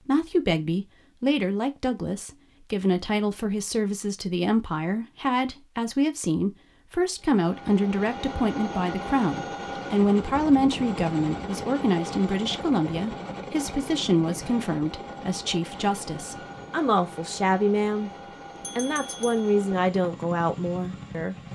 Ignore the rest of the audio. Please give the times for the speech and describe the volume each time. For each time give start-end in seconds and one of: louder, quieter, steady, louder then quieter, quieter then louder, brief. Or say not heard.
0.0-18.1 steady
18.8-21.4 brief.